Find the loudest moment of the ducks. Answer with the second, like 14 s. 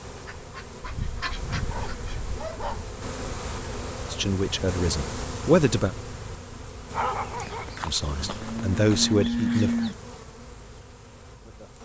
1 s.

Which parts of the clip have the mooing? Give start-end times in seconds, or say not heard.
7.3-9.9.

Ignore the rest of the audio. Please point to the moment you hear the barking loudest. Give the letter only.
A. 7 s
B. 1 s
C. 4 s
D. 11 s
A.